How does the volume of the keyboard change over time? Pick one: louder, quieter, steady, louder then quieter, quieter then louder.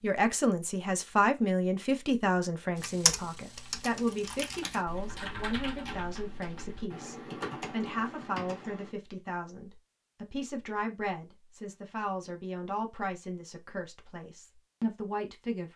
steady.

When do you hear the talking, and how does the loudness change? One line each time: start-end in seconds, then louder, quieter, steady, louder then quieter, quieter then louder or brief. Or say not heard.
0.0-15.7 quieter.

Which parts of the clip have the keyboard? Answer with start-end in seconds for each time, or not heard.
2.8-8.9.